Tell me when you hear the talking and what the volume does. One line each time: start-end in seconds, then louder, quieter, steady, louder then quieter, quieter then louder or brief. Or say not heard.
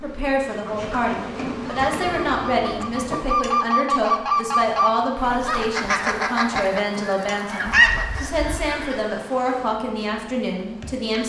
0.0-11.2 steady.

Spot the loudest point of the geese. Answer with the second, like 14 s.
8 s.